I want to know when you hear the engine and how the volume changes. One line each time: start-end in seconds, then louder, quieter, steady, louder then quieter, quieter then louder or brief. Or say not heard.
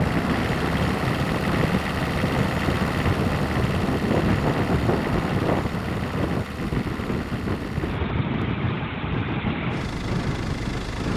0.0-11.1 quieter.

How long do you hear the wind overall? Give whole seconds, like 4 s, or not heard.
11 s.